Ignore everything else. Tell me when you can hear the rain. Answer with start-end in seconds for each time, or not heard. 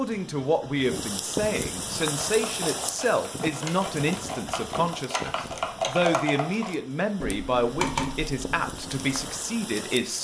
0.0-10.1.